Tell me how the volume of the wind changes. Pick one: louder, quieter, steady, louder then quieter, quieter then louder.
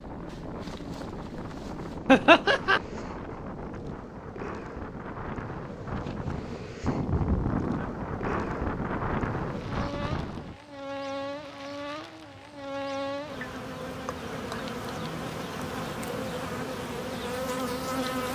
louder.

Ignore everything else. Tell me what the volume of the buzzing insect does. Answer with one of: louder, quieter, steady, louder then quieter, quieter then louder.
louder.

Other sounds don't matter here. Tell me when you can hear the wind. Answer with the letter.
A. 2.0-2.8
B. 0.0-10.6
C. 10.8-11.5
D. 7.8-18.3
B.